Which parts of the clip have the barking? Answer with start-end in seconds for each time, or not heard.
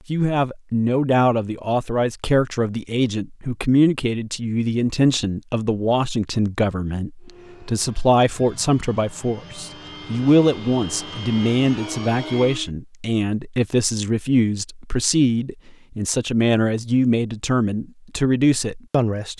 not heard.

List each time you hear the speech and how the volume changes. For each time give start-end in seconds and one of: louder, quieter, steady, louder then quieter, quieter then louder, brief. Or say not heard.
0.1-19.3 steady.